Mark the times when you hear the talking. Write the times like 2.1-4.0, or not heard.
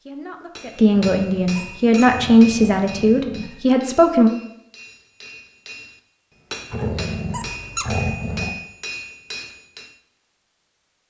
0.1-4.3.